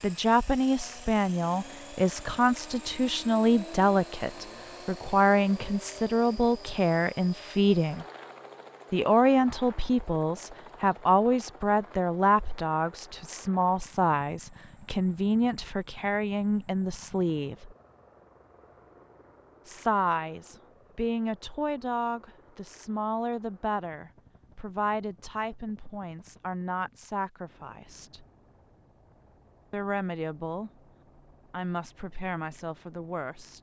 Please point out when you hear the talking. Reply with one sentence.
You can hear the talking from 0.0 to 8.1 s, from 8.9 to 17.8 s, from 19.6 to 28.2 s, from 29.7 to 30.7 s and from 31.5 to 33.5 s.